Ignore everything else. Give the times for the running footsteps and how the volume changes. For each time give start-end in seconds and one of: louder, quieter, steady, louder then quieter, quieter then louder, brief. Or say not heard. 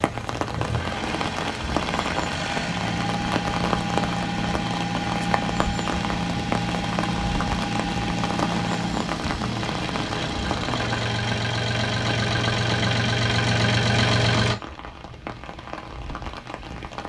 not heard.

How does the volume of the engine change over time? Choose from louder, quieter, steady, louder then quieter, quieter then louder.
louder.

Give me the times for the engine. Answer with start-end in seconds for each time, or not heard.
0.2-14.6.